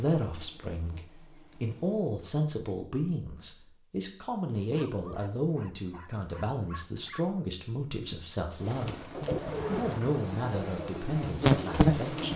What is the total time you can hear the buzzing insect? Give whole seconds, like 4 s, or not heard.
5 s.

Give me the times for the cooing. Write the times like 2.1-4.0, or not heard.
8.6-12.3.